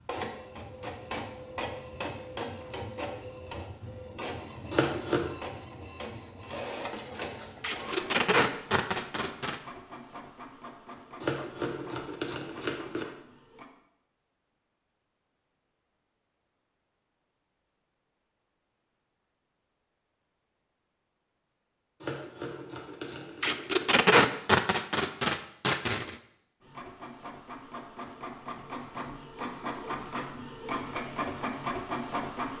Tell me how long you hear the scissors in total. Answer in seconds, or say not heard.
4 s.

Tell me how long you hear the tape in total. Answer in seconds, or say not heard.
5 s.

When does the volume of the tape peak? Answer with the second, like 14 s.
24 s.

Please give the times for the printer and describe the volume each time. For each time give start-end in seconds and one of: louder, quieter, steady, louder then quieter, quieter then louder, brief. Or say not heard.
0.0-13.7 quieter
26.6-32.5 louder.